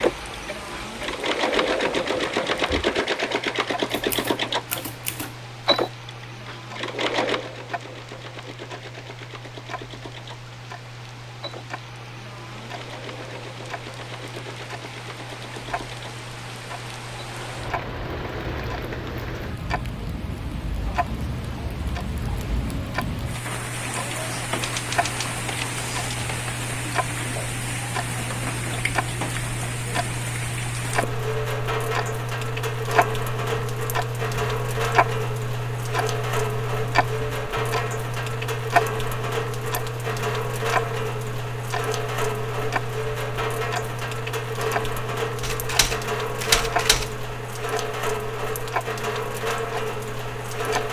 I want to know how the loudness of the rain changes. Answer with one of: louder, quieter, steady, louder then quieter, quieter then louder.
louder.